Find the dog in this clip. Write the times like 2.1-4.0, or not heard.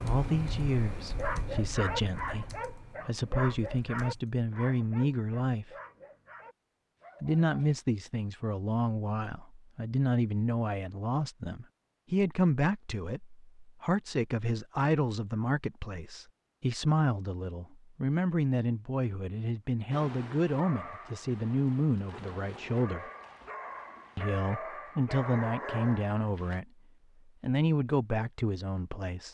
1.1-7.8, 19.9-26.6.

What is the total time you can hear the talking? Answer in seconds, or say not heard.
26 s.